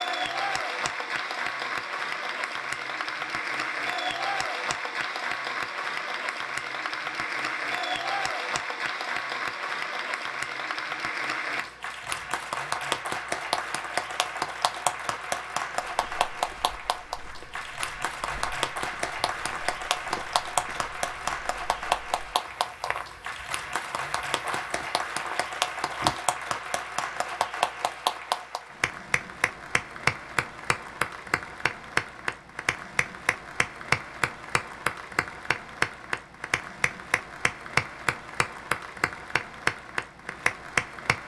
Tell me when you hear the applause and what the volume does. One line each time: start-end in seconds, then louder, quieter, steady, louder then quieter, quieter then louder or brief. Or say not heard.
0.0-41.2 steady.